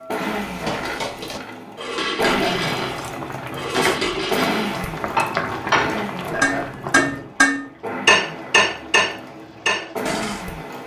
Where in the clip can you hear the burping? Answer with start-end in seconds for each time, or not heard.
2.2-2.6, 6.3-6.8.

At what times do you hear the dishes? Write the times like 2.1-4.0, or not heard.
0.4-10.4.